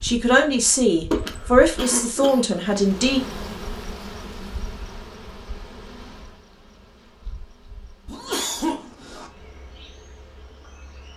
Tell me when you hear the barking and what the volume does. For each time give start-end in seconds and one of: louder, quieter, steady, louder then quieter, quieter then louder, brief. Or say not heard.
not heard.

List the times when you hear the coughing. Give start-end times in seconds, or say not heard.
1.1-2.4, 8.1-9.3.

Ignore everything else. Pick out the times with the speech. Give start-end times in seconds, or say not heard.
0.0-3.2.